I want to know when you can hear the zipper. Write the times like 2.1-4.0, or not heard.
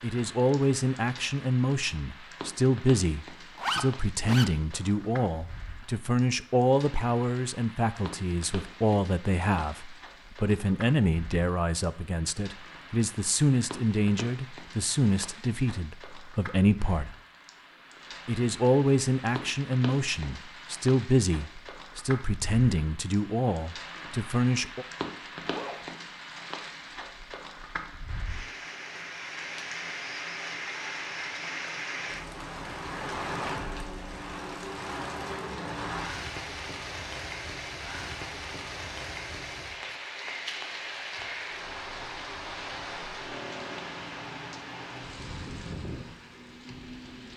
3.5-4.5, 25.4-25.9.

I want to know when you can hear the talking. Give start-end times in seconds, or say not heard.
0.0-17.1, 18.2-24.9.